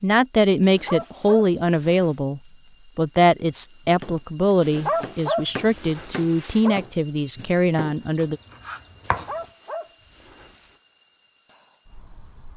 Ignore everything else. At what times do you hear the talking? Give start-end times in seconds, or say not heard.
0.0-8.4.